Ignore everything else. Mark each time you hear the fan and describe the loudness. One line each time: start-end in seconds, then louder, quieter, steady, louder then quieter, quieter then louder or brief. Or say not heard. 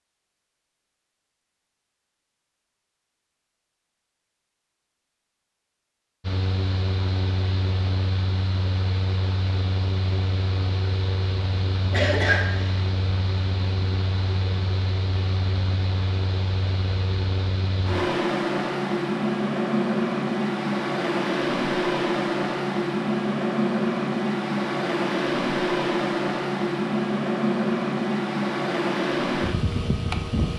6.2-30.5 louder.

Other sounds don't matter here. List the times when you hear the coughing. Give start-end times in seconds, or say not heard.
11.9-12.8.